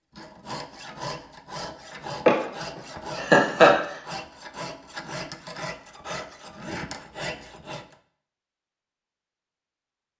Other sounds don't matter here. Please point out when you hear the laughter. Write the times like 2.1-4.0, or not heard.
2.2-4.0.